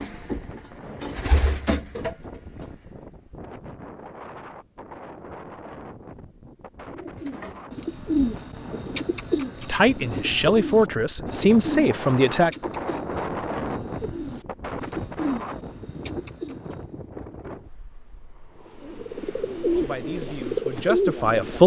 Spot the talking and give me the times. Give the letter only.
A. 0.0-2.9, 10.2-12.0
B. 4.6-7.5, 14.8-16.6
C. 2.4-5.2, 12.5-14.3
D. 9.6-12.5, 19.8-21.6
D.